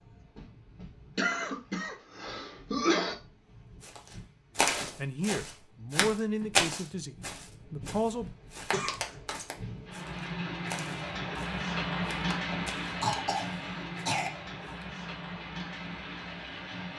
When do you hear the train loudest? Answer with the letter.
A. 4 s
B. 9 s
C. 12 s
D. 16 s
C.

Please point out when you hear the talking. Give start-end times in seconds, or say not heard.
5.0-8.3.